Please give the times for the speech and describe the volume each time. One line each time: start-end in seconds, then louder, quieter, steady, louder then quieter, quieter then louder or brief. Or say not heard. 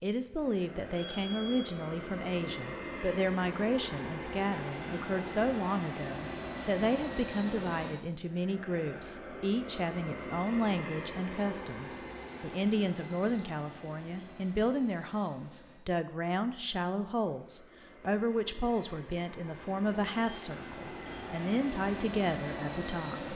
0.0-23.3 steady.